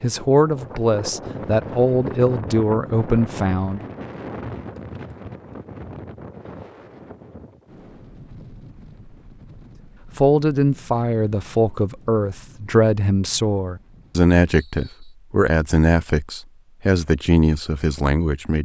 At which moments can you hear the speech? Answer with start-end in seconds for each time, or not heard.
0.0-3.9, 10.2-18.6.